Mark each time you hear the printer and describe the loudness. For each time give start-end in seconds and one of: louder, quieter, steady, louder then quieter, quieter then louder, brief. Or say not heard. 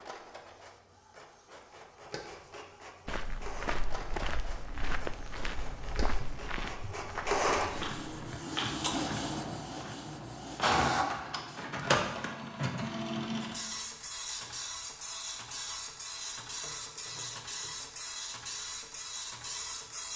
0.0-20.1 louder then quieter.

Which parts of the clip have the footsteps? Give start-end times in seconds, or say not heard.
3.0-8.1.